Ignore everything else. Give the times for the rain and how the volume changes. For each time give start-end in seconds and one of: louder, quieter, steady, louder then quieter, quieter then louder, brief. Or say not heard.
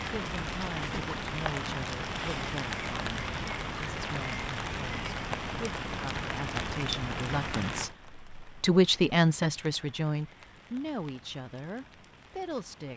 0.0-12.9 quieter.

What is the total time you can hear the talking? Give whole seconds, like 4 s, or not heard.
13 s.